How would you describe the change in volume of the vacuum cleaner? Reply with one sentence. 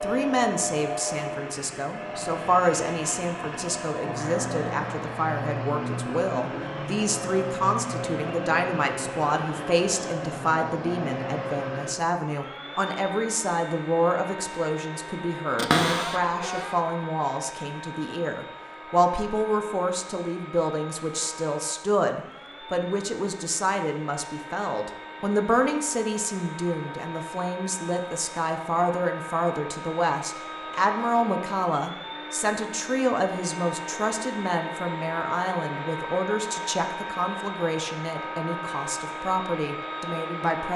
The loudness of the vacuum cleaner goes down, then up.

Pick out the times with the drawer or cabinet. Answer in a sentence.
The drawer or cabinet can be heard from 15.6 to 16.8 s.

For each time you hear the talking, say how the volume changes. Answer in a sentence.
The talking can be heard from 0.0 to 40.7 s, at a steady volume.